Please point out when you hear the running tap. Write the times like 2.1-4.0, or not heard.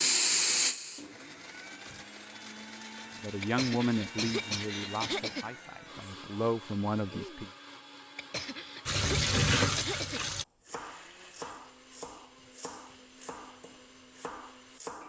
0.0-2.0, 8.8-10.4.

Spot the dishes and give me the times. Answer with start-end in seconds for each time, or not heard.
not heard.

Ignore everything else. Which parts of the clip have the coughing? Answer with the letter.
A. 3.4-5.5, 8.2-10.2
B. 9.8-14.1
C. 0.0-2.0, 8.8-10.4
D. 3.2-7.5
A.